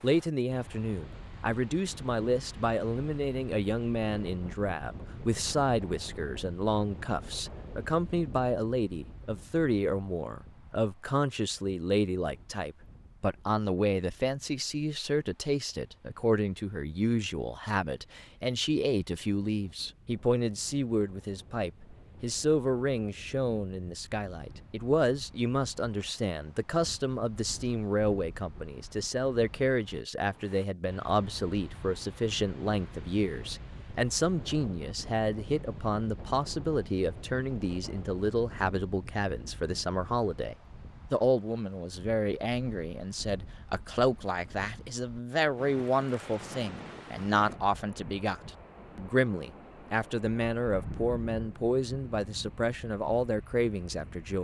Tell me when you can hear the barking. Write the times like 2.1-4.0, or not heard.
not heard.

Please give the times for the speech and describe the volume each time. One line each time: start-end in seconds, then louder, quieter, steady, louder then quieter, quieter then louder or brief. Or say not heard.
0.0-54.4 steady.